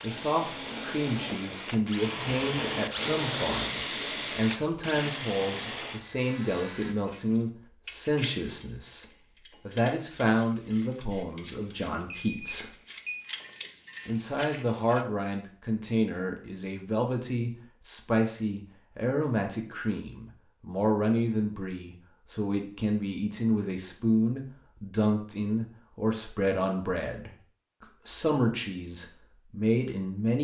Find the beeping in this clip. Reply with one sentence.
You can hear the beeping from 12.1 to 13.2 s.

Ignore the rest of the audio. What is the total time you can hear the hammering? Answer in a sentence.
The hammering can't be heard in this clip.